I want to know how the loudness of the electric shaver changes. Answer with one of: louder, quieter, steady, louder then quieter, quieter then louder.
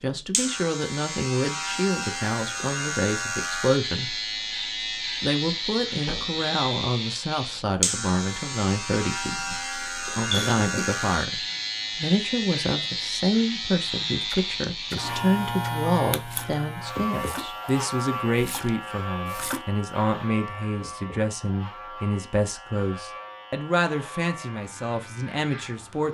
quieter.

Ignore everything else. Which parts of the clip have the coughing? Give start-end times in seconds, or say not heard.
10.3-10.9.